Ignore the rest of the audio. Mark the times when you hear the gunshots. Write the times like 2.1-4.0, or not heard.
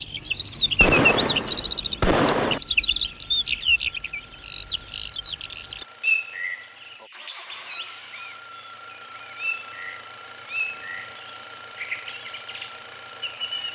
0.8-2.6.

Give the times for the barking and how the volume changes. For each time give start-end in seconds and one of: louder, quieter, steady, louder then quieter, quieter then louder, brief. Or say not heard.
not heard.